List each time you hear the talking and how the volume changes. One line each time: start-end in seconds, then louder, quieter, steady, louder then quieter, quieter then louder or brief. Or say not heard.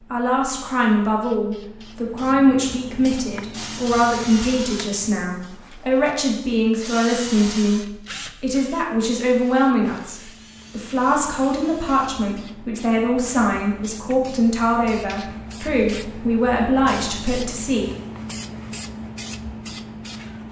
0.1-17.9 steady.